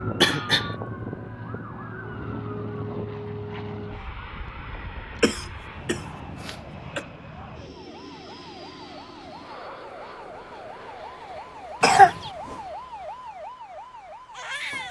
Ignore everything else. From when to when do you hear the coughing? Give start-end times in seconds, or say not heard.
0.2-0.7, 5.2-7.0, 11.8-12.3.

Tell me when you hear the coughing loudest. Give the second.
12 s.